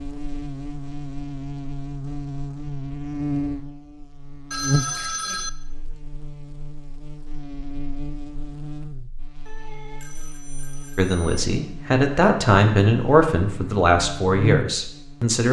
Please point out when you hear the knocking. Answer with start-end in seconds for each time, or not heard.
not heard.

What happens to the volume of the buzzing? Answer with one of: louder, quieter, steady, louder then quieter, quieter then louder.
quieter then louder.